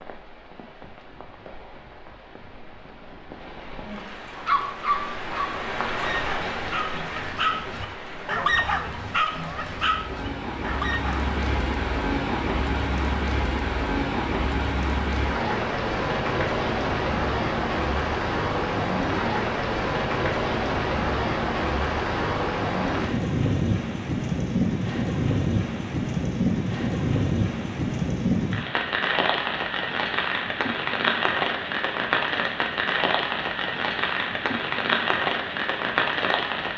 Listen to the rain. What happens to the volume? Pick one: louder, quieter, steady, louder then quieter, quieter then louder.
louder.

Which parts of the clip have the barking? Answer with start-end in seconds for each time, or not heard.
4.5-11.2.